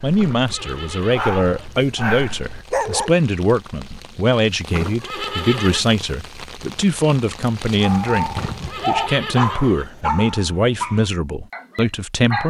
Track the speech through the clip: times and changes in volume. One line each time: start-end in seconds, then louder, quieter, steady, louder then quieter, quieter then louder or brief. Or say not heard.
0.0-12.4 steady.